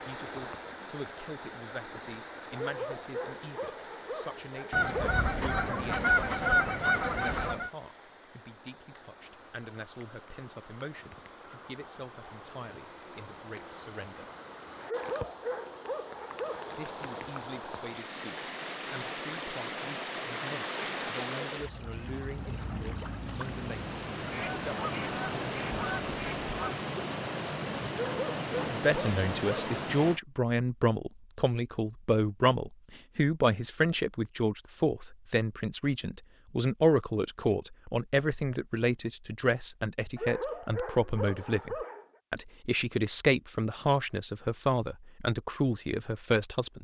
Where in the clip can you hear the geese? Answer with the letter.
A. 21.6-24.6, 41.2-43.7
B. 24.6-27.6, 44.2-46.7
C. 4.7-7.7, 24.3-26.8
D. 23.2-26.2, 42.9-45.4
C.